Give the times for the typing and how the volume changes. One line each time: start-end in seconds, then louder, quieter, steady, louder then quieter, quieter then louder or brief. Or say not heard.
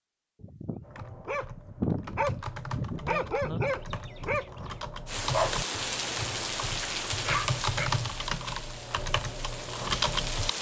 0.8-10.5 louder.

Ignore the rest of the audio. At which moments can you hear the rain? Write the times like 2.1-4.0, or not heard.
5.0-10.5.